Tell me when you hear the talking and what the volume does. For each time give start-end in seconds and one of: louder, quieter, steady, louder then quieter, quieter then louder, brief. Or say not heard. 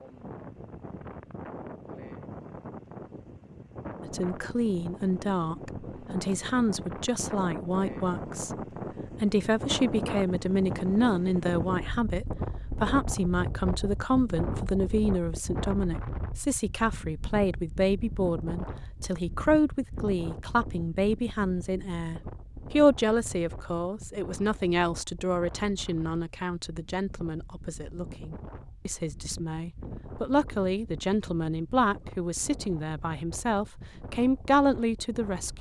4.0-35.5 steady.